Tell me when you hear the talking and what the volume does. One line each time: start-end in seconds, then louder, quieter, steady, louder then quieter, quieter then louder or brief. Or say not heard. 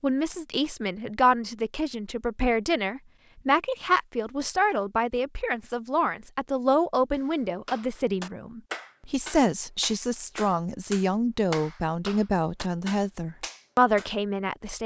0.0-14.8 steady.